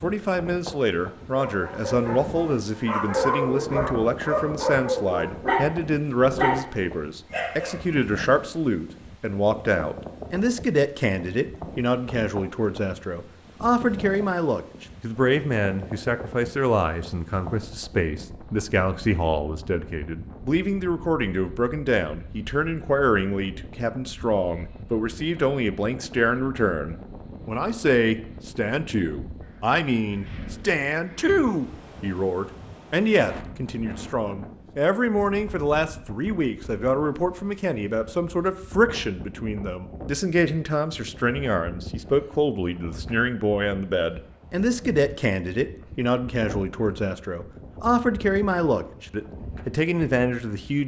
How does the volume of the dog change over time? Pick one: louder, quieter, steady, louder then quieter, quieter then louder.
louder.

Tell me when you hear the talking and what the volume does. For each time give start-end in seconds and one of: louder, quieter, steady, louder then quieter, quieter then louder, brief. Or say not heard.
0.0-50.8 steady.